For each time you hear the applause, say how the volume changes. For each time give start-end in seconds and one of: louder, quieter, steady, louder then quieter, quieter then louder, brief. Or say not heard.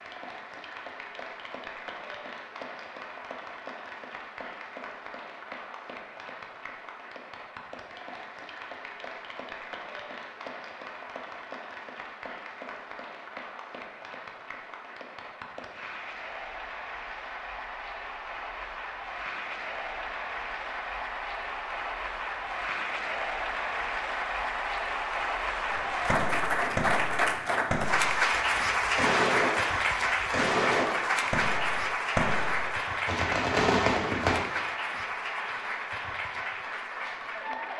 0.0-37.7 louder.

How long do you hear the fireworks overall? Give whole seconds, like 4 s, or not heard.
9 s.